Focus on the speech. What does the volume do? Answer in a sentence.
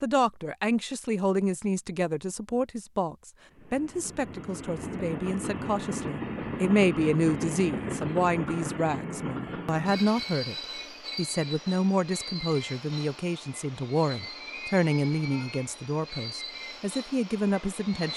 The loudness of the speech stays about the same.